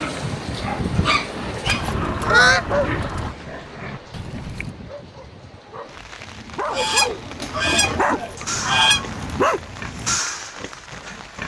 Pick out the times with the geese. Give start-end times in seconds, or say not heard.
1.6-3.4, 6.7-9.1.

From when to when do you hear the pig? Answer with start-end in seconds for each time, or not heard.
0.0-4.8, 7.2-11.4.